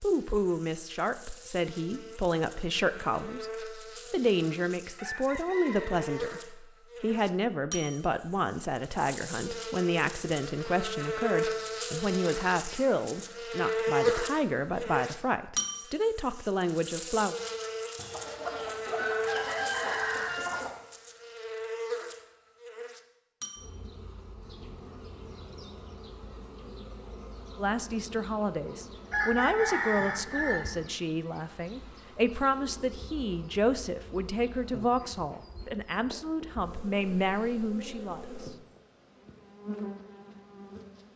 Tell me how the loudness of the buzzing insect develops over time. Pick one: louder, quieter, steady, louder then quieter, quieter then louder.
louder then quieter.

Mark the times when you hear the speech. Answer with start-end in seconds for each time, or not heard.
0.0-17.4, 27.6-38.2.